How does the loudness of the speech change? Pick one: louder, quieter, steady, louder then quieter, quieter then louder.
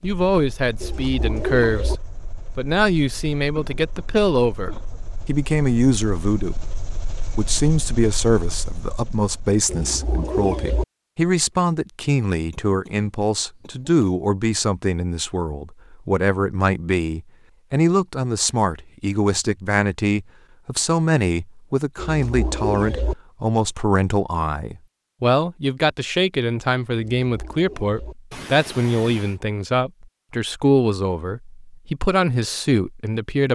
steady.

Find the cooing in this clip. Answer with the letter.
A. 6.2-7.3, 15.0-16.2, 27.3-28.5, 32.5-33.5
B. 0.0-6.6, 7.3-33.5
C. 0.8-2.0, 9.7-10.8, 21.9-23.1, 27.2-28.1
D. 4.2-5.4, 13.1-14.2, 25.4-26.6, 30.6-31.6
C.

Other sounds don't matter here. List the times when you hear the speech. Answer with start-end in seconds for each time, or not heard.
0.0-6.6, 7.3-33.5.